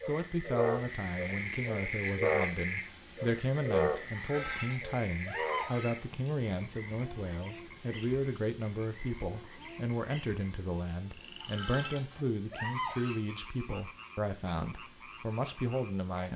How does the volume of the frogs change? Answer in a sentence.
The volume of the frogs goes down.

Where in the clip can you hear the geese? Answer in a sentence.
The geese can be heard from 4.2 to 6.0 s and from 11.4 to 13.2 s.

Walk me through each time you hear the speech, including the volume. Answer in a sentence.
The speech can be heard from 0.1 to 16.3 s, at a steady volume.